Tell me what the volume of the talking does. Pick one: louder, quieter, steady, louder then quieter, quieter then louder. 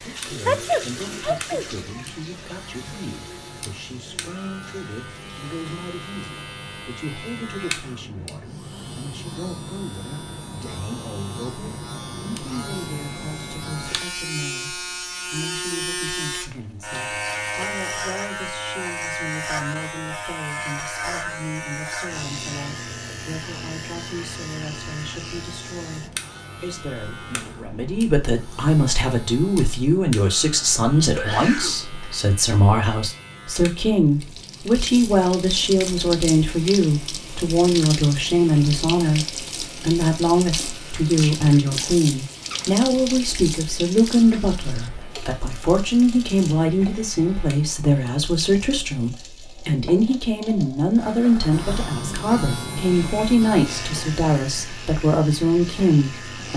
louder.